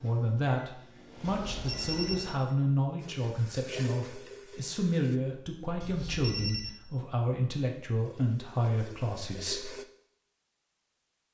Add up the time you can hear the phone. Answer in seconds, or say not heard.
2 s.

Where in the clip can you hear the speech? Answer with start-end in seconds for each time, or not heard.
0.0-9.7.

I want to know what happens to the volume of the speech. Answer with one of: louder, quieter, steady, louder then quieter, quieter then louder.
steady.